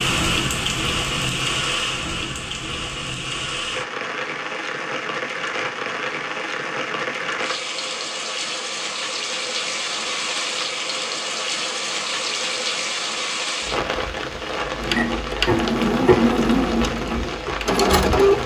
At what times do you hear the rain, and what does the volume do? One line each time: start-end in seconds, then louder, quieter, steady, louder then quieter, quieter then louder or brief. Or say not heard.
0.0-18.4 steady.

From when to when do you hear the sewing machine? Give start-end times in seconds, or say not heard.
14.8-18.4.